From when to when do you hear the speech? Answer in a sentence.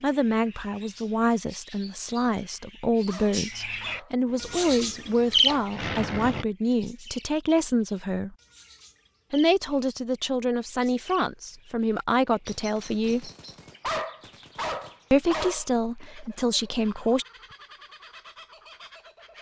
The speech can be heard from 0.0 to 8.3 s, from 9.3 to 13.3 s and from 15.1 to 17.2 s.